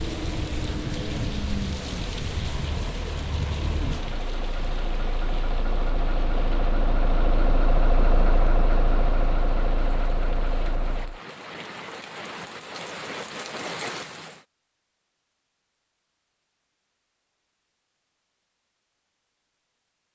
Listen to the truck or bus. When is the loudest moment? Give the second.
8 s.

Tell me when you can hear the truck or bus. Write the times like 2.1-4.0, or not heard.
0.0-11.2.